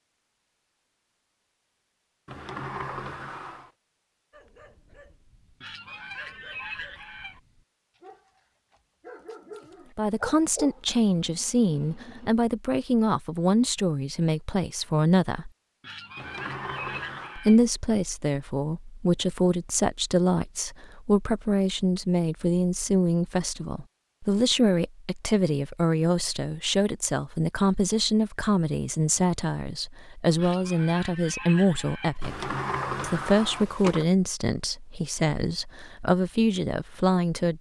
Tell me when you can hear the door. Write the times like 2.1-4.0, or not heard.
2.2-3.7, 16.1-17.4, 32.2-34.0.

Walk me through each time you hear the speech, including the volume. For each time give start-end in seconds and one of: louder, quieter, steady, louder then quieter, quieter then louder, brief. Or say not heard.
9.9-15.5 steady
17.4-37.5 steady.